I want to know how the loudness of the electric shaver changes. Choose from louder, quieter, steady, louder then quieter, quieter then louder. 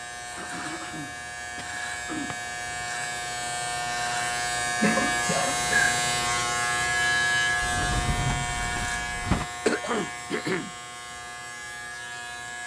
louder then quieter.